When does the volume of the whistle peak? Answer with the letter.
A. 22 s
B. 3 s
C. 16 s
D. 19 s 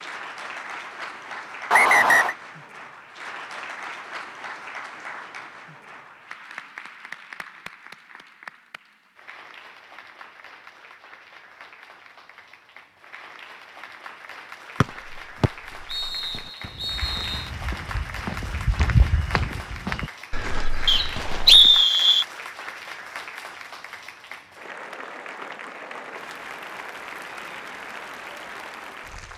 A.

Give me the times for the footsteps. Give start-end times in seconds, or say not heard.
14.8-21.9.